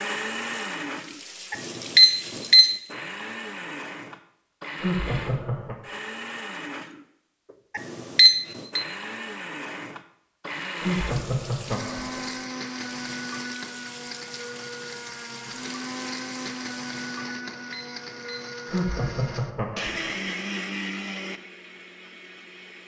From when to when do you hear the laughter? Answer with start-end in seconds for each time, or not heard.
4.8-5.8, 10.8-12.2, 18.6-20.2.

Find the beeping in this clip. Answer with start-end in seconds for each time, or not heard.
1.5-2.8, 7.8-8.8, 17.2-18.5.